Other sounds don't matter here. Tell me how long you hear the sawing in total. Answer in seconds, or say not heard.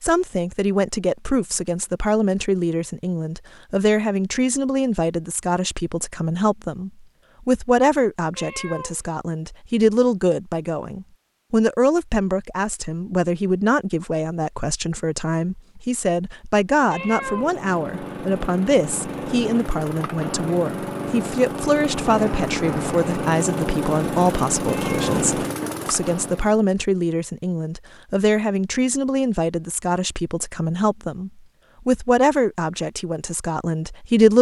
not heard.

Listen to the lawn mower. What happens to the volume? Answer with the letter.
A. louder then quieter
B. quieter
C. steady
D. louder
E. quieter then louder
D.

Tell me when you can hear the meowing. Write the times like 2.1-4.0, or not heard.
8.3-9.0, 16.9-17.6, 24.7-25.1.